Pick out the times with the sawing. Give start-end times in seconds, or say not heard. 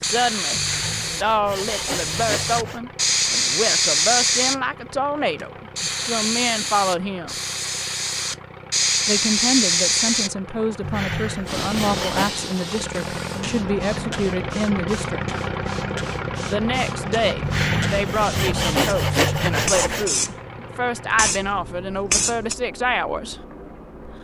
0.6-2.8, 10.8-12.4, 17.4-20.1.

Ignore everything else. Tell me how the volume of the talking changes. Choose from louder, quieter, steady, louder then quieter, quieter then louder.
steady.